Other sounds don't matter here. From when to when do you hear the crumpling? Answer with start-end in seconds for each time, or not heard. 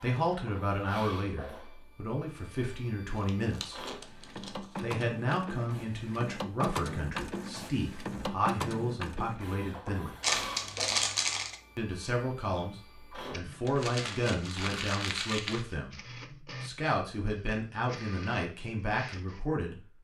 3.1-5.0, 10.2-11.6, 13.7-15.7.